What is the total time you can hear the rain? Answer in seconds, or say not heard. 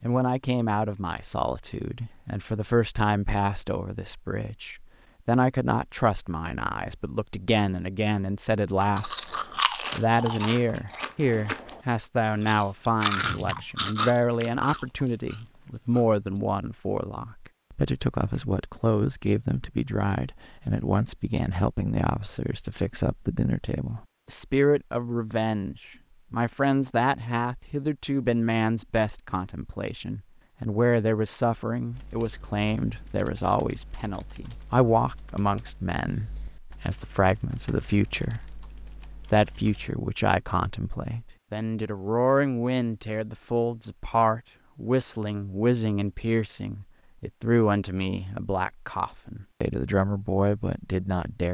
not heard.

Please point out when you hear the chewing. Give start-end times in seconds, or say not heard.
8.8-11.8, 12.4-16.0.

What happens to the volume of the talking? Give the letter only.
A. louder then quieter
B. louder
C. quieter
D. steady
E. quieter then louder
D.